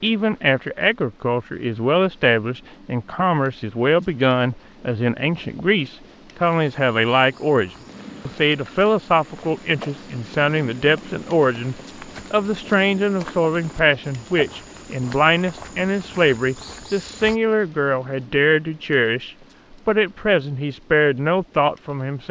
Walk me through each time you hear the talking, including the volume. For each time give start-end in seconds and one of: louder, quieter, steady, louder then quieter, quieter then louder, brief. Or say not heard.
0.0-22.2 steady.